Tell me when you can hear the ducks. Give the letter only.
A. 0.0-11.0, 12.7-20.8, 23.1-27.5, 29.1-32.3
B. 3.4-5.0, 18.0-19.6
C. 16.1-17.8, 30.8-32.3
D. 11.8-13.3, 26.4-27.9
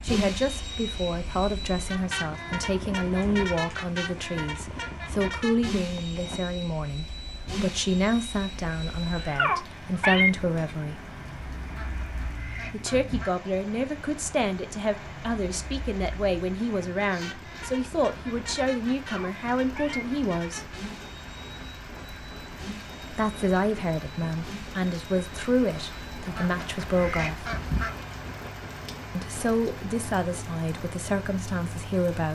D.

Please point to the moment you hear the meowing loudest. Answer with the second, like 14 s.
10 s.